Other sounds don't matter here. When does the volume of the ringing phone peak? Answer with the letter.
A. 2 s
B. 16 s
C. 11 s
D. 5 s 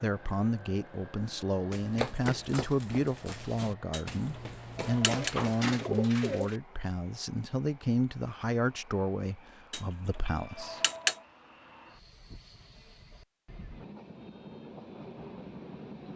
C.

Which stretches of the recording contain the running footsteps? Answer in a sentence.
You can hear the running footsteps from 1.7 to 5.7 s.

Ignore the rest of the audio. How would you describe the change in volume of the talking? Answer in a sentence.
The volume of the talking stays about the same.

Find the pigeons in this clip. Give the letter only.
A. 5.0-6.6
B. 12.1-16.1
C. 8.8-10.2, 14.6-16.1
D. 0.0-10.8
A.